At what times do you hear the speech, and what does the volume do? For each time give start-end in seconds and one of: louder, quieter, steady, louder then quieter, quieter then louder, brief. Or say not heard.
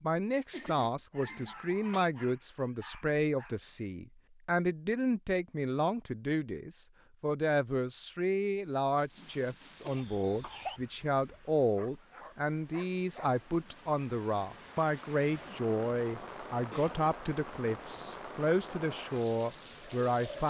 0.0-20.4 steady.